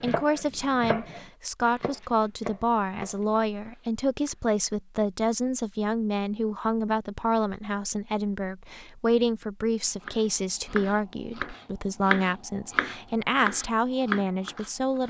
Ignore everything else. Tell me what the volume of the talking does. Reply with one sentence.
The loudness of the talking stays about the same.